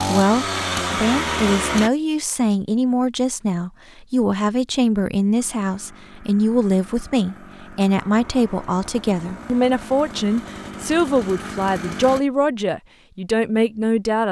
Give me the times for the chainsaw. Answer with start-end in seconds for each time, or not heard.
0.0-1.9, 5.3-12.2.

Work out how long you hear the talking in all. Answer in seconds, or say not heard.
14 s.